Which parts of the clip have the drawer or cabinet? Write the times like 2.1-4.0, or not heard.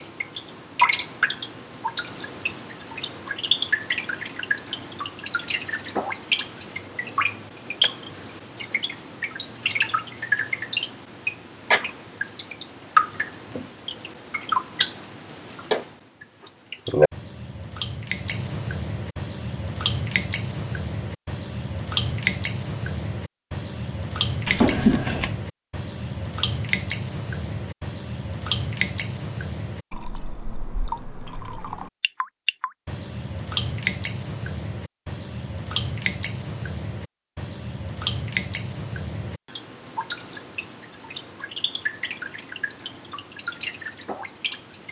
24.4-25.4.